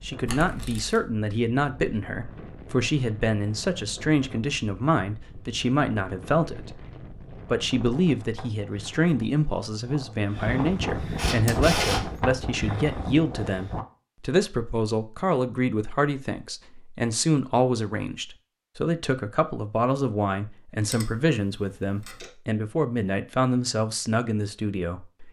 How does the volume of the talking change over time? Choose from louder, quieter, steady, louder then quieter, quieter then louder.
steady.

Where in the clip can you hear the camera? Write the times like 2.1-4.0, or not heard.
0.2-1.0, 11.2-12.4, 20.9-22.3.